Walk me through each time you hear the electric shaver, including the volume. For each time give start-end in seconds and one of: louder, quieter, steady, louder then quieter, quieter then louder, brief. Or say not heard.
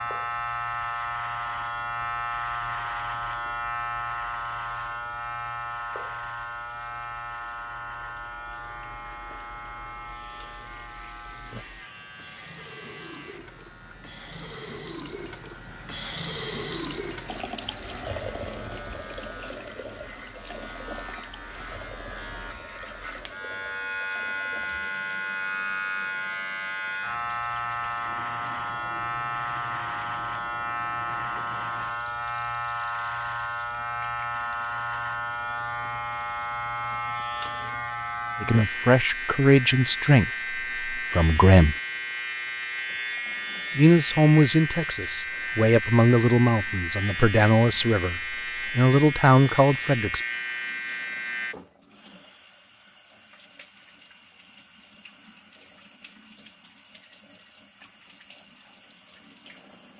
0.0-51.5 quieter then louder.